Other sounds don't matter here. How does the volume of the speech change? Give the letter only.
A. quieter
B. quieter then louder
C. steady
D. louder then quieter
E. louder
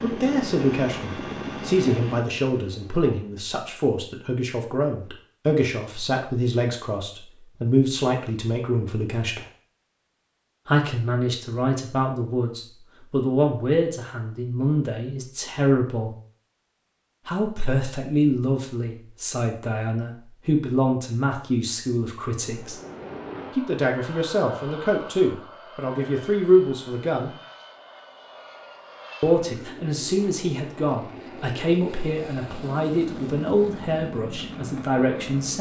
C.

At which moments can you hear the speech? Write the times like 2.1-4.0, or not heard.
0.0-9.4, 10.7-16.1, 17.2-22.8, 23.6-27.3, 29.2-35.5.